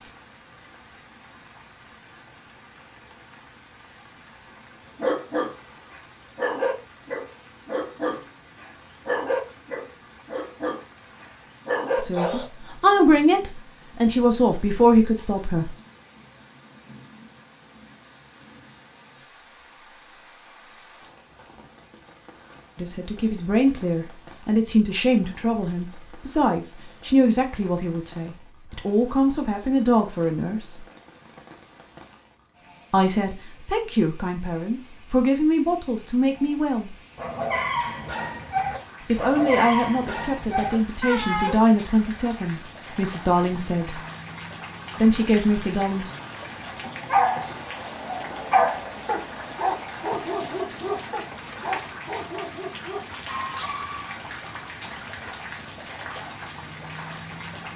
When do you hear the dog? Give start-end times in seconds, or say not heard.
4.8-12.4, 37.1-41.6, 46.8-54.1.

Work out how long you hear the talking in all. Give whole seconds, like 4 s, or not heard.
22 s.